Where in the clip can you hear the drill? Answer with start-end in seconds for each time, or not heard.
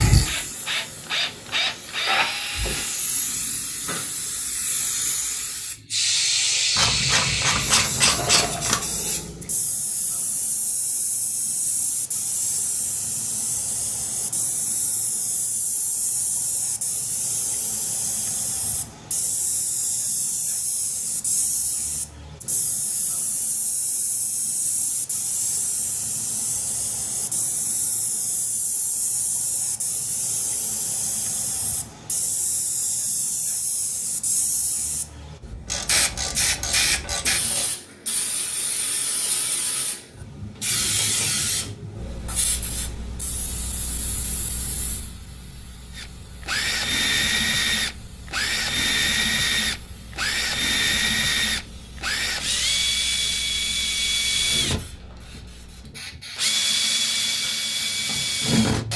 0.1-3.0, 46.0-58.9.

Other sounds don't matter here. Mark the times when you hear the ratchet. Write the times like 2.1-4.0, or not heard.
6.8-8.8, 35.6-37.7, 40.5-41.8.